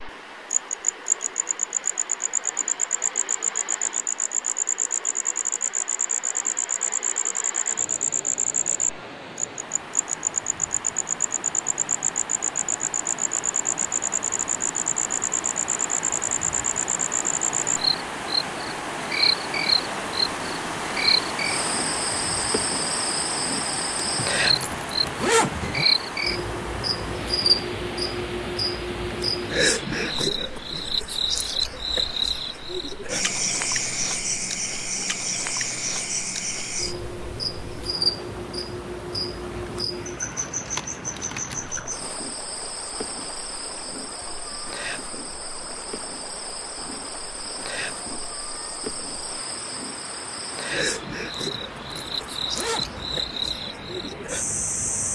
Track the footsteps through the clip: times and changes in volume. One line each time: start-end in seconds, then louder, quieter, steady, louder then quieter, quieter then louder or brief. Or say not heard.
not heard.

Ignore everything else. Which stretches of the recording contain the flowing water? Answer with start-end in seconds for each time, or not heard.
0.0-55.1.